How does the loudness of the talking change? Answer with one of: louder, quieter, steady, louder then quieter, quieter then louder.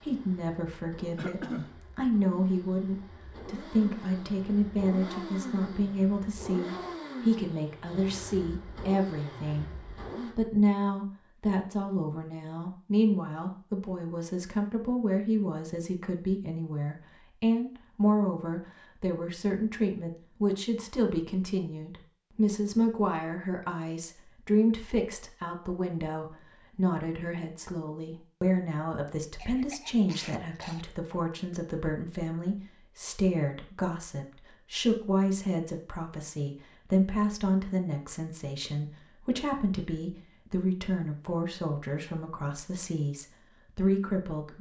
steady.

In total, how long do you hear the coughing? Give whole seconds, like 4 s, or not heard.
2 s.